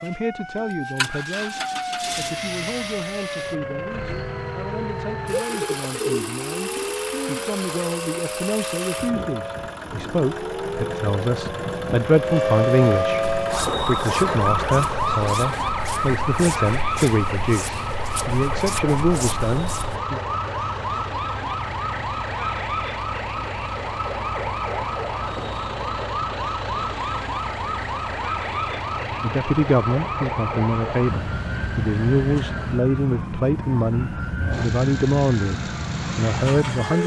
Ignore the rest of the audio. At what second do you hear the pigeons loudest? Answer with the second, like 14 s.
6 s.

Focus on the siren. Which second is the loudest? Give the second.
13 s.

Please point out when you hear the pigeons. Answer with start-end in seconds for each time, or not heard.
5.5-7.5.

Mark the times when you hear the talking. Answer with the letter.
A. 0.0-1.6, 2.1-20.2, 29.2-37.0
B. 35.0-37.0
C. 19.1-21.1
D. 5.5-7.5
A.